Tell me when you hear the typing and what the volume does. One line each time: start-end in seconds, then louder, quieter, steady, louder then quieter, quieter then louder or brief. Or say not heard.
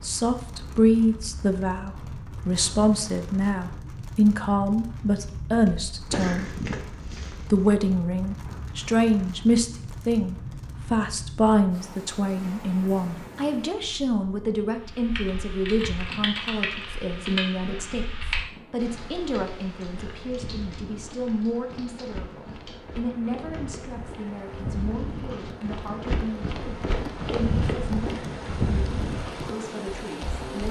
14.8-23.8 quieter.